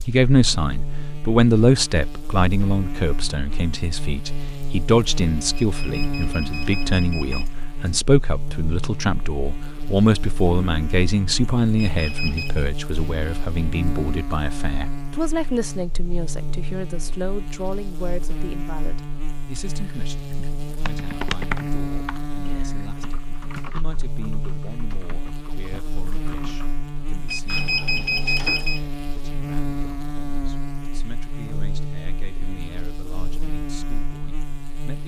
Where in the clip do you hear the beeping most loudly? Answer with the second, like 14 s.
28 s.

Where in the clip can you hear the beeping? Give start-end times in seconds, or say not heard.
5.5-7.5, 11.8-12.7, 27.2-28.8.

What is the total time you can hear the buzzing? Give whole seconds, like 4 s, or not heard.
35 s.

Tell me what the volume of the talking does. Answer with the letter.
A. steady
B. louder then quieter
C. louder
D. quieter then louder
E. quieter
E.